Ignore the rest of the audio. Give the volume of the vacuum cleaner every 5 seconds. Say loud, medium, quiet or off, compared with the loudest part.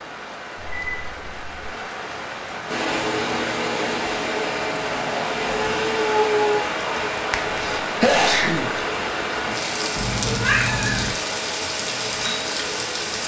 loud, loud, medium.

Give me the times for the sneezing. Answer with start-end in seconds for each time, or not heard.
7.3-8.8.